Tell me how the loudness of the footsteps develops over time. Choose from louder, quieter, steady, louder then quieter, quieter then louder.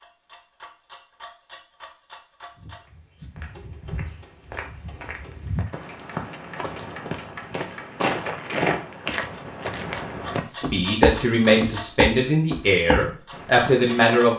louder.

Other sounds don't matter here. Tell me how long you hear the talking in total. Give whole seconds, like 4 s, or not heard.
4 s.